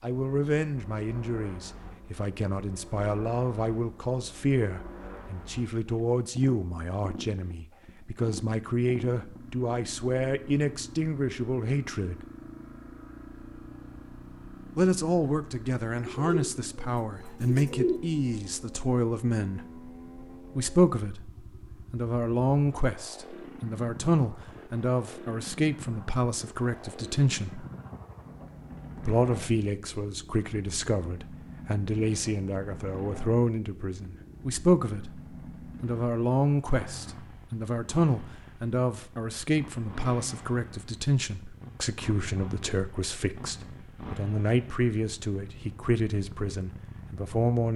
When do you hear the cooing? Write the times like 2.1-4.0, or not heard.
15.9-18.0.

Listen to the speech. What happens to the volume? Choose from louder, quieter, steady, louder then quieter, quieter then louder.
steady.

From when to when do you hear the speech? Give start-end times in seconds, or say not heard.
0.0-12.2, 14.8-19.6, 20.6-27.6, 28.9-47.7.